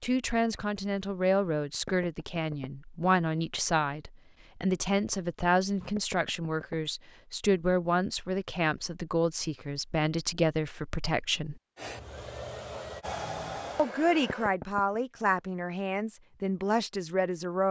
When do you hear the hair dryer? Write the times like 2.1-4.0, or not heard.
11.8-14.6.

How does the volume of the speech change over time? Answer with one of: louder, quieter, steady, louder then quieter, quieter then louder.
steady.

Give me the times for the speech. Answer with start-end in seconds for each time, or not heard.
0.0-11.6, 13.8-17.6.